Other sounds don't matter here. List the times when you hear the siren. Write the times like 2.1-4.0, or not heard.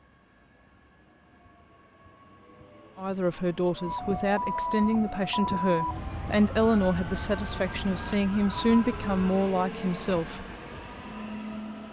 3.8-9.4.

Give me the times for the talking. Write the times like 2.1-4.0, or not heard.
3.0-10.4.